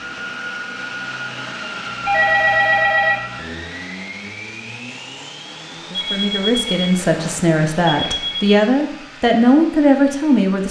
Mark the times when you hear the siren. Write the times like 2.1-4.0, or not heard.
not heard.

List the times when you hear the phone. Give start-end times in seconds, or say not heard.
2.0-3.2, 5.9-8.6.